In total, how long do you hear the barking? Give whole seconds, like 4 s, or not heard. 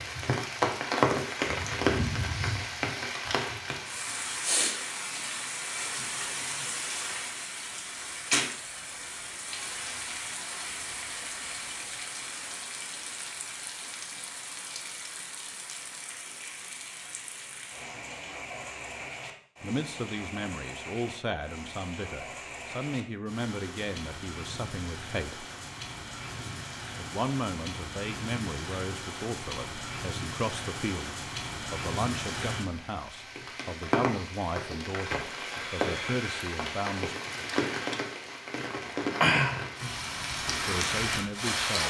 not heard.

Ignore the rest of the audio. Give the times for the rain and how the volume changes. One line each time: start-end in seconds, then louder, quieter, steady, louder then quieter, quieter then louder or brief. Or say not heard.
0.0-41.8 quieter then louder.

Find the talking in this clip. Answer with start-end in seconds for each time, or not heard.
19.6-25.4, 26.9-37.1, 40.5-41.8.